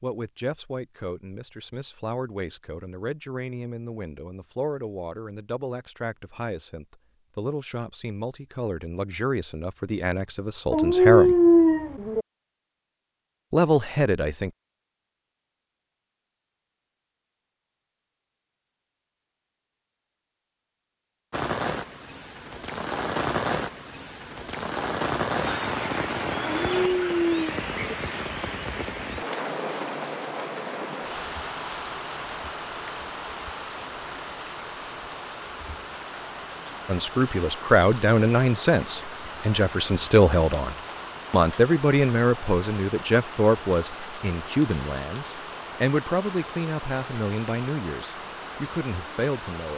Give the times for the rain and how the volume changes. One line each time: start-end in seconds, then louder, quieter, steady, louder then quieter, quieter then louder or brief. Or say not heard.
21.3-49.7 quieter.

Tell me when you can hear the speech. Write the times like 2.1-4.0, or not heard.
0.0-11.3, 13.5-14.5, 36.9-49.7.